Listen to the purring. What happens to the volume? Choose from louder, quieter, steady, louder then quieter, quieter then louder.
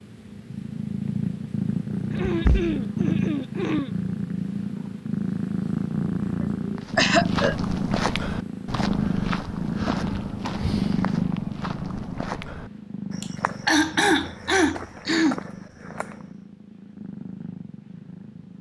quieter.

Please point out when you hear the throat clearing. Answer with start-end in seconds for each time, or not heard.
2.1-3.9, 6.4-7.5, 13.2-15.4.